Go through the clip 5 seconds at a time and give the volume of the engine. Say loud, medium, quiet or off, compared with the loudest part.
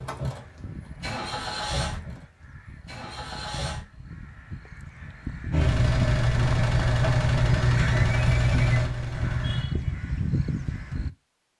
medium, loud, off.